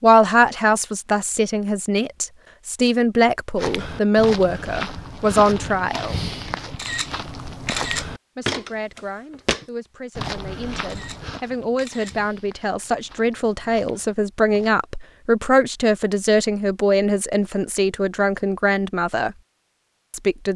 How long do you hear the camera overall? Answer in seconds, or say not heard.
3 s.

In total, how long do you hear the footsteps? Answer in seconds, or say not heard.
11 s.